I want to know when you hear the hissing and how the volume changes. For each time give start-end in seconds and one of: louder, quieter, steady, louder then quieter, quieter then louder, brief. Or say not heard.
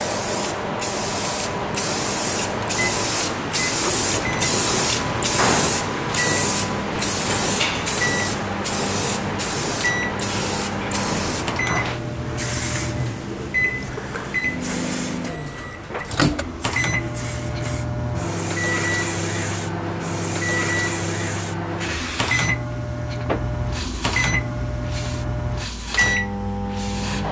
0.0-27.2 quieter.